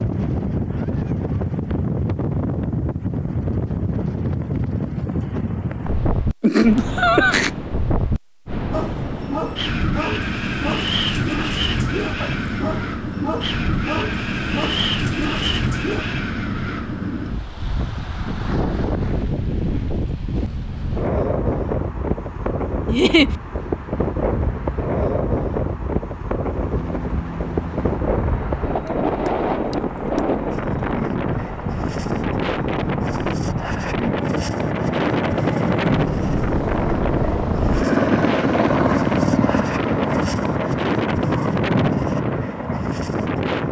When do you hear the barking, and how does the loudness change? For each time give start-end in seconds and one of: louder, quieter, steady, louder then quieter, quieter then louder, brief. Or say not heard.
8.7-16.1 steady.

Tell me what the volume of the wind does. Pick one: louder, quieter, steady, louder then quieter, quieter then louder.
steady.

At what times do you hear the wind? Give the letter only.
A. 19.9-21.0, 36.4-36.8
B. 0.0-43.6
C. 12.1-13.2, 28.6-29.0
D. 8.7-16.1
B.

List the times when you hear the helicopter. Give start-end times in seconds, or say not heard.
26.5-43.6.